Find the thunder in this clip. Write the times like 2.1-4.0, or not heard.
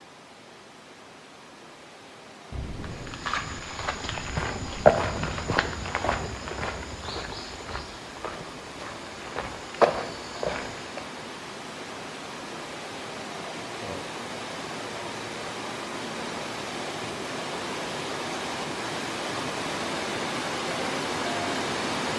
2.5-5.7.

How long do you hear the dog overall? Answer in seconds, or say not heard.
not heard.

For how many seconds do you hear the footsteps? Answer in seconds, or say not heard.
8 s.